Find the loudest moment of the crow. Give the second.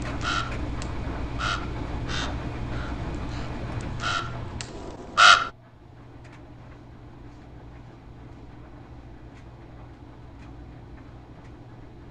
5 s.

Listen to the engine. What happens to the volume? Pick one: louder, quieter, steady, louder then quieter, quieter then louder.
quieter.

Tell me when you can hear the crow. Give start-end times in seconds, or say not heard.
0.0-5.5.